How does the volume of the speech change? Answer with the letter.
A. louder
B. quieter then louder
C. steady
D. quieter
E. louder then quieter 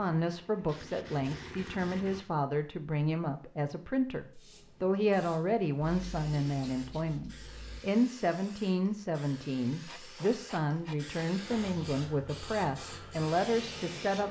C.